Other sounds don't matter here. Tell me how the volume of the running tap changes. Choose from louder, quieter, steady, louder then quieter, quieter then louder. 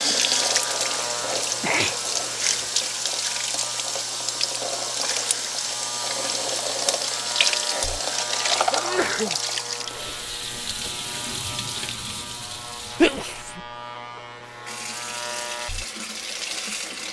quieter.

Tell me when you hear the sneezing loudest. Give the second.
13 s.